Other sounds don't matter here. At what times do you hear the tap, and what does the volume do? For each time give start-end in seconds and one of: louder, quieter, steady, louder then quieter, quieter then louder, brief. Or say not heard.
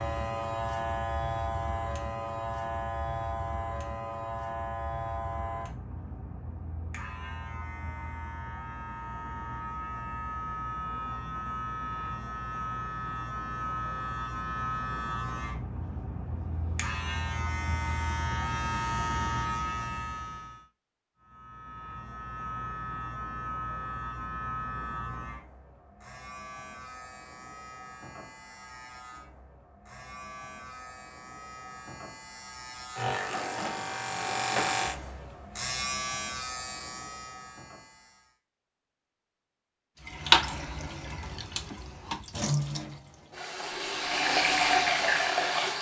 40.0-45.7 louder.